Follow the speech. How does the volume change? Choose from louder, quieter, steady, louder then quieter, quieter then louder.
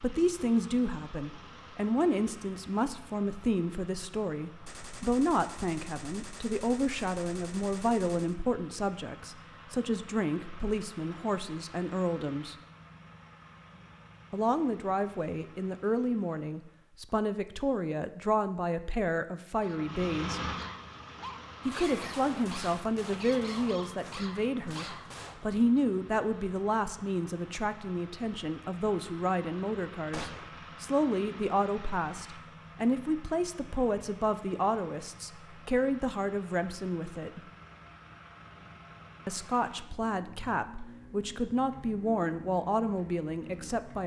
steady.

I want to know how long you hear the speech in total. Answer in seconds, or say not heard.
39 s.